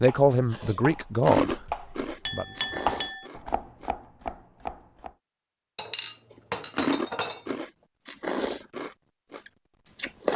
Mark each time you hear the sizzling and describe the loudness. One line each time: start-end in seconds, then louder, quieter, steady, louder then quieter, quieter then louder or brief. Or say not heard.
not heard.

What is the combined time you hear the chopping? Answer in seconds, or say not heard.
5 s.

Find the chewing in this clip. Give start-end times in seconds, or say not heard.
0.0-3.9, 6.3-10.3.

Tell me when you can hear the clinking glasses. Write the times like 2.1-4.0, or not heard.
2.2-3.2, 5.8-7.5.